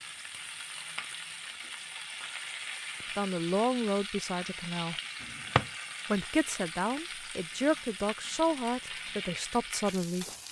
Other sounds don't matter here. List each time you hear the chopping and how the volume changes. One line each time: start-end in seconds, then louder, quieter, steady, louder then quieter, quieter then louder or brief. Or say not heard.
not heard.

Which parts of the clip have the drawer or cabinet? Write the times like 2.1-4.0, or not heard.
5.2-5.7.